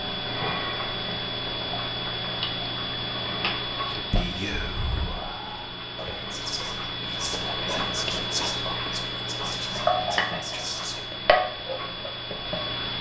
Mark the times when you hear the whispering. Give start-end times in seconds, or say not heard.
3.9-11.0.